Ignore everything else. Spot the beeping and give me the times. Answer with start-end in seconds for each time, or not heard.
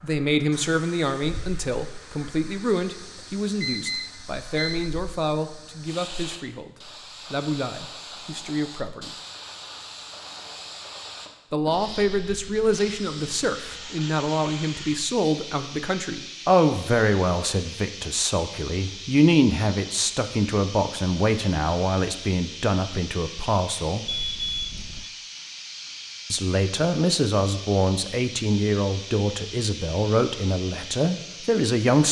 3.1-4.9, 24.1-25.1.